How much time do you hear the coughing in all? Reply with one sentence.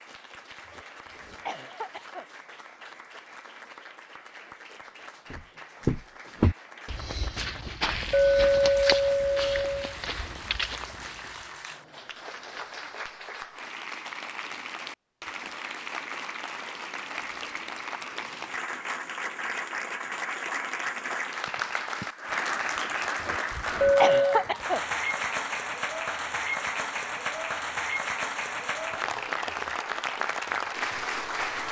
The coughing can be heard for 3 seconds in total.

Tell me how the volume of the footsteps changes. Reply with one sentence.
The volume of the footsteps goes down.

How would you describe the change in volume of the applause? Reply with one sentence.
The loudness of the applause goes up.